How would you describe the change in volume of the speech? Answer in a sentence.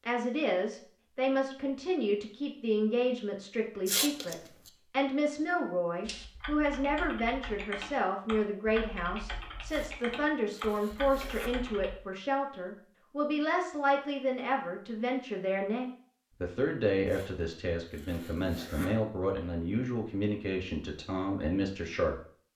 The loudness of the speech stays about the same.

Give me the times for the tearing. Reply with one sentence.
The tearing can be heard from 3.9 to 4.7 s, from 9.7 to 11.5 s and from 17.1 to 18.9 s.